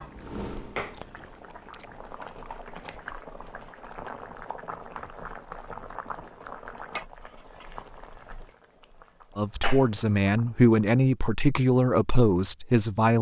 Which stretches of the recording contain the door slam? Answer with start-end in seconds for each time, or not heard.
not heard.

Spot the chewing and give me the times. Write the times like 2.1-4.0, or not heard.
0.0-2.5.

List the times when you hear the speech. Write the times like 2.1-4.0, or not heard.
9.3-13.1.